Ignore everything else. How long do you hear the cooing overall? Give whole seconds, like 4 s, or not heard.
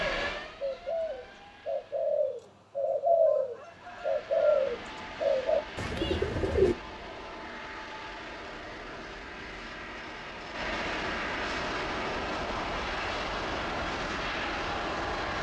7 s.